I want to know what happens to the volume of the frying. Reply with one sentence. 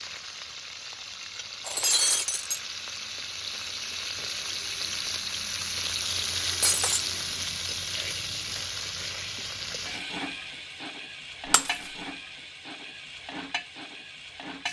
The loudness of the frying goes up, then down.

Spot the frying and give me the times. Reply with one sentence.
You can hear the frying from 0.0 to 14.6 s.